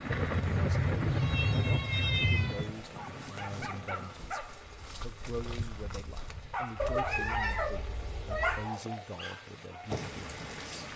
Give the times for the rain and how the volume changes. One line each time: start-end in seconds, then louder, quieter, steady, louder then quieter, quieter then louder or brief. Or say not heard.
0.0-10.9 quieter then louder.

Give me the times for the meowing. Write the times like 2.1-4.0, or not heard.
0.1-2.7, 6.8-8.7.